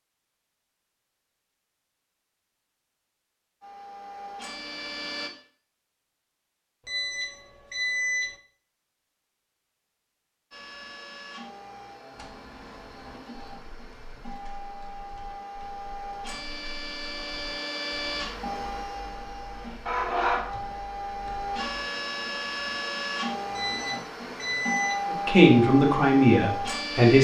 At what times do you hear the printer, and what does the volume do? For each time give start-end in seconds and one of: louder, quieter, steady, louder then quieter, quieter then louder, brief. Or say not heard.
3.6-5.3 brief
10.5-27.1 louder.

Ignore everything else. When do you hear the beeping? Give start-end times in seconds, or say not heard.
6.8-8.4, 23.6-25.1.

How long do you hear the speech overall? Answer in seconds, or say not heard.
2 s.